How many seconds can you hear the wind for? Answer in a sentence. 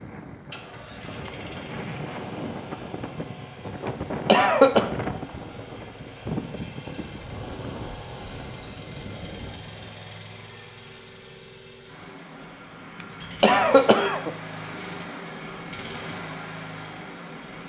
The wind can be heard for 10 seconds in total.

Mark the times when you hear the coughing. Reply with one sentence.
The coughing can be heard from 3.9 to 4.9 s and from 13.4 to 14.3 s.